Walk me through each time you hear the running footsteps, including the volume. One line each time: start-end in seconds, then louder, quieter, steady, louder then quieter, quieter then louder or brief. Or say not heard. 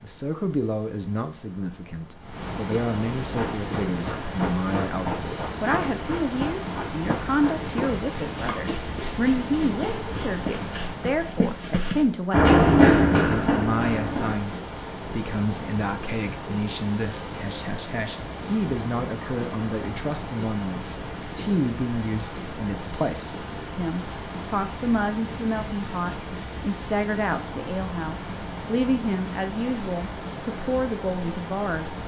3.3-14.3 louder.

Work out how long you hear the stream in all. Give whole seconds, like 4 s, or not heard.
32 s.